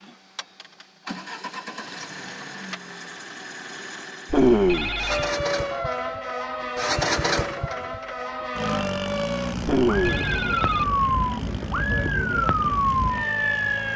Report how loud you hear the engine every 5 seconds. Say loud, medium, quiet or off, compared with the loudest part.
medium, loud, medium.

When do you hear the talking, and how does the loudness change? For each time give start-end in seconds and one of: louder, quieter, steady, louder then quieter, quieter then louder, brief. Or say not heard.
not heard.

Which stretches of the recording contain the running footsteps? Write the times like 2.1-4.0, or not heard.
not heard.